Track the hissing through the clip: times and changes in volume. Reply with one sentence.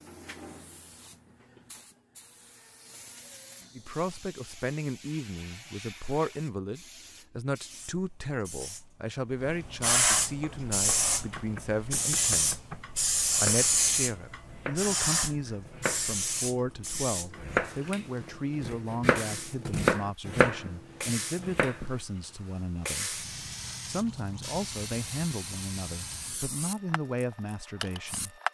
You can hear the hissing from 0.0 to 28.4 s, getting louder then quieter.